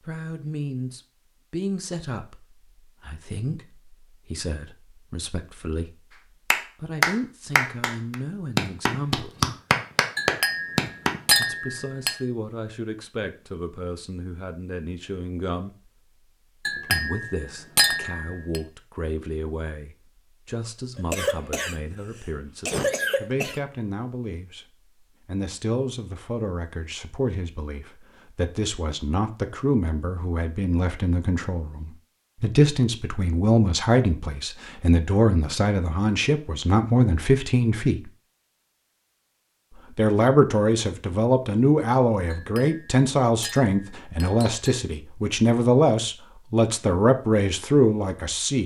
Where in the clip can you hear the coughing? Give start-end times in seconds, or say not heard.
20.9-23.6.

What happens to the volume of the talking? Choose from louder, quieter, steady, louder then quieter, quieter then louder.
louder.